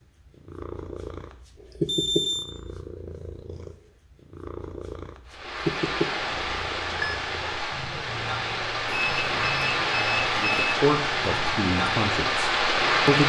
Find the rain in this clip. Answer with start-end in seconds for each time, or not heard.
5.2-13.2.